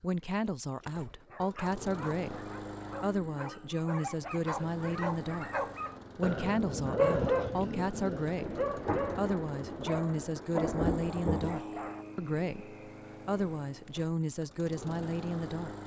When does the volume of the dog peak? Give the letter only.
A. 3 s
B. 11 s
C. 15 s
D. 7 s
D.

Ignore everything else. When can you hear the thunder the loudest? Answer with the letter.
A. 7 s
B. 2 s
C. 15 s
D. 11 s
D.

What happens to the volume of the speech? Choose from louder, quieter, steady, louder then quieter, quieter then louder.
steady.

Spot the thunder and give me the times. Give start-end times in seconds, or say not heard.
8.3-11.6.